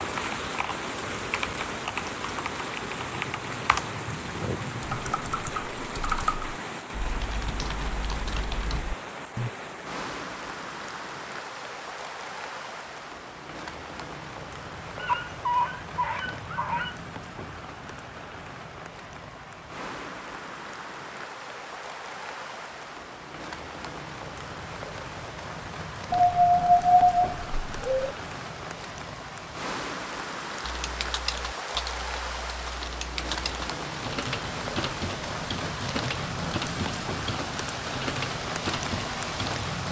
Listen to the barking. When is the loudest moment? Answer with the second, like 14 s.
27 s.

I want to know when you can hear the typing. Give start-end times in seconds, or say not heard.
0.0-9.5, 30.6-39.6.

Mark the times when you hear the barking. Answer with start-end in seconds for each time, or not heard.
14.9-16.9, 26.1-28.1.